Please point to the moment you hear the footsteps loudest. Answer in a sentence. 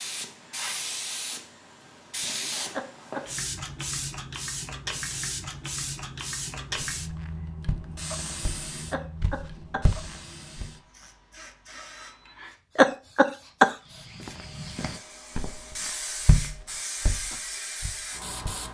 The loudest moment of the footsteps is at 16 seconds.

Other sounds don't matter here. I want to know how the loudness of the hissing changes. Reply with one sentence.
The loudness of the hissing goes down, then up.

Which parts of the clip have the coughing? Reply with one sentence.
You can hear the coughing from 2.7 to 3.6 s, from 8.9 to 9.9 s and from 12.8 to 13.8 s.